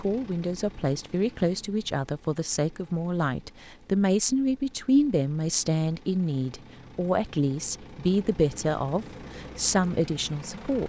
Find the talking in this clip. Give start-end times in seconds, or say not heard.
0.0-10.8.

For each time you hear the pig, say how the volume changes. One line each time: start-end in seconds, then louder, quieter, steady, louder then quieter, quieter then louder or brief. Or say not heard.
not heard.